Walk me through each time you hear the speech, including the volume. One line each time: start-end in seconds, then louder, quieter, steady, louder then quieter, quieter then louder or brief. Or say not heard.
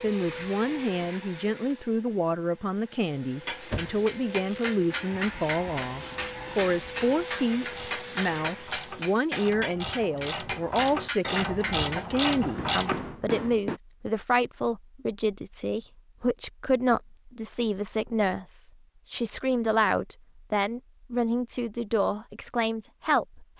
0.0-23.4 steady.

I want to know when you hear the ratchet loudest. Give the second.
12 s.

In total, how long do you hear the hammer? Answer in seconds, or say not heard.
10 s.